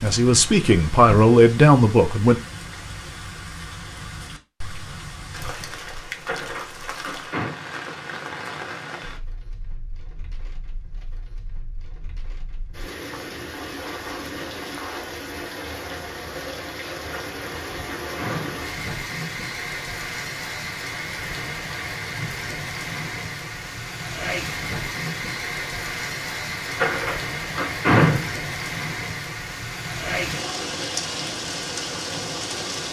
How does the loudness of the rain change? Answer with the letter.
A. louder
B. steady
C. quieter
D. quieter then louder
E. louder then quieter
A.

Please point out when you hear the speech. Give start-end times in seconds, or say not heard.
0.0-2.4.